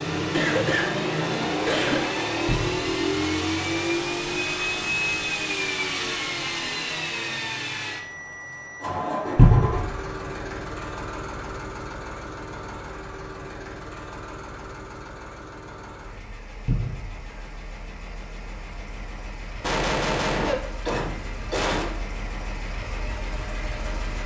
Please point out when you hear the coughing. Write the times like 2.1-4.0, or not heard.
0.3-2.2, 19.6-21.9.